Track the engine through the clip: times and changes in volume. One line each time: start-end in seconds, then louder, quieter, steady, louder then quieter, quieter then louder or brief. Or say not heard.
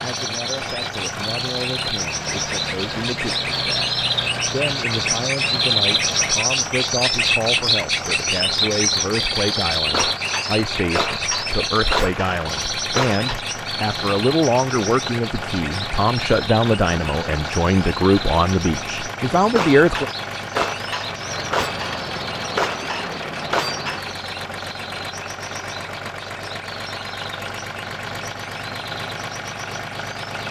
0.0-30.4 steady.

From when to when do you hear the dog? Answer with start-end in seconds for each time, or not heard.
not heard.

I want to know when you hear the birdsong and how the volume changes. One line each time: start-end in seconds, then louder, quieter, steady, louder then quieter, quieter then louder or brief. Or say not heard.
0.0-30.4 quieter.